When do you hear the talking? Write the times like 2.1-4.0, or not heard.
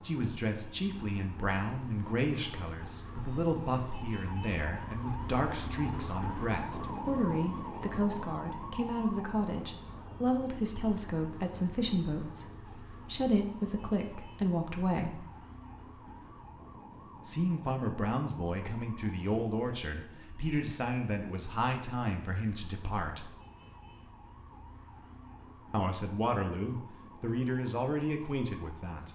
0.0-15.2, 17.2-23.3, 25.7-29.0.